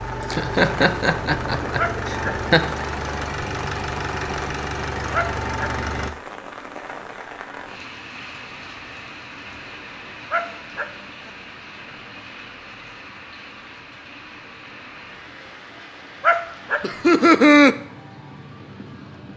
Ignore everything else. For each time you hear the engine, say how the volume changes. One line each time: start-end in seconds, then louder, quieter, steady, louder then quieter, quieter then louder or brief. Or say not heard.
0.0-6.2 steady.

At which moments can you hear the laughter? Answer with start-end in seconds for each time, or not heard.
0.2-2.7, 16.8-17.8.